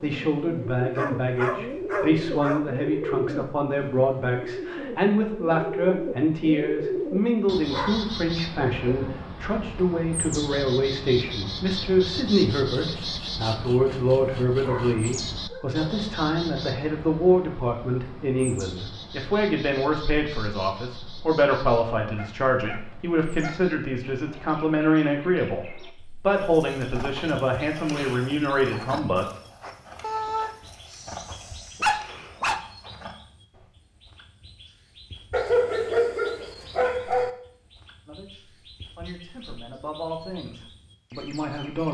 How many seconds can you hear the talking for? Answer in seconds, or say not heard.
33 s.